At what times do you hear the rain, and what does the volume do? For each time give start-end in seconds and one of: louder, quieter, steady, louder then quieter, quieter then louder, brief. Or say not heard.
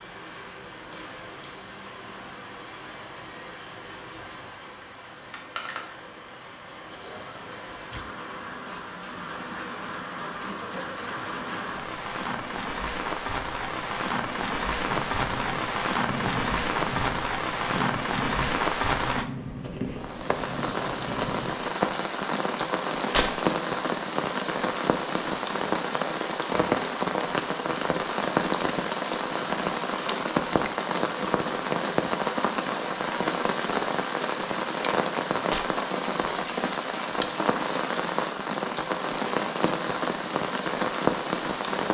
0.0-41.8 louder.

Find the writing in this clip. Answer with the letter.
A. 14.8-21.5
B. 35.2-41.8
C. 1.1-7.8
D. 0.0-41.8
A.